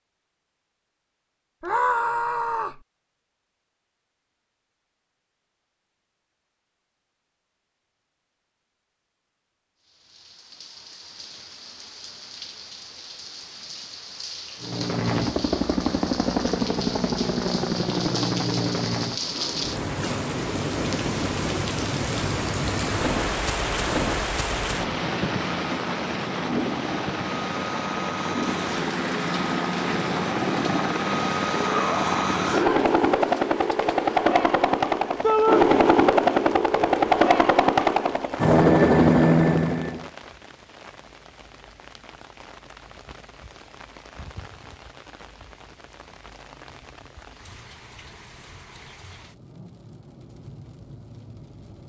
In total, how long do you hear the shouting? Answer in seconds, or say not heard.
3 s.